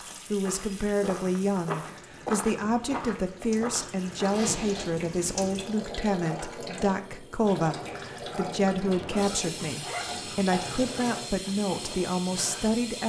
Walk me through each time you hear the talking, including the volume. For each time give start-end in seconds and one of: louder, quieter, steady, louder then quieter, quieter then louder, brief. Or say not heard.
0.3-13.0 steady.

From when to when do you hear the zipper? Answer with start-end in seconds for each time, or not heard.
4.3-5.0, 8.4-10.3.